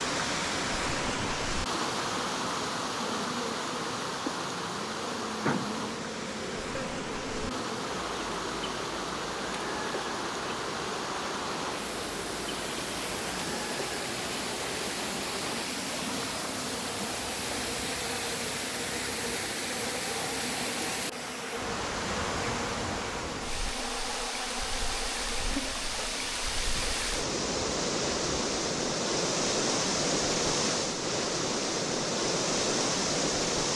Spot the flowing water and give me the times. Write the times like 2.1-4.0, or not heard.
0.0-33.7.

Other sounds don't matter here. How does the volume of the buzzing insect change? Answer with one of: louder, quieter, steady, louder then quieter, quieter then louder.
steady.